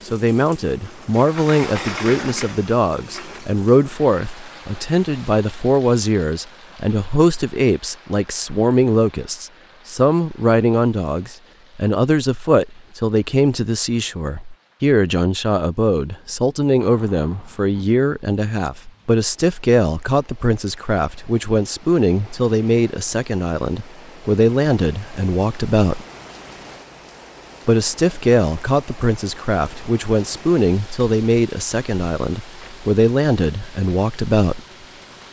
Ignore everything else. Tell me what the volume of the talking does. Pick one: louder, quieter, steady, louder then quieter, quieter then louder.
steady.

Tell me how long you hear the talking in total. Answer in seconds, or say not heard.
33 s.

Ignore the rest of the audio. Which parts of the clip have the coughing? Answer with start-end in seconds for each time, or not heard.
not heard.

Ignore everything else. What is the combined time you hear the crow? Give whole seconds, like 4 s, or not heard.
not heard.